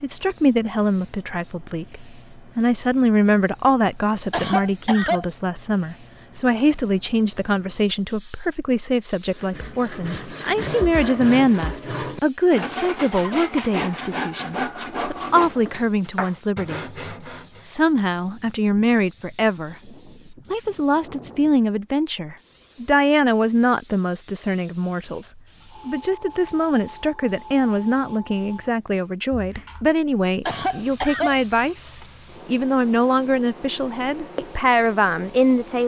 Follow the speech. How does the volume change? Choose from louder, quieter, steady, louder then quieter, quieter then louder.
steady.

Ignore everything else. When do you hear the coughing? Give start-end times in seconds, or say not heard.
4.3-5.2, 12.6-13.5, 30.4-31.4.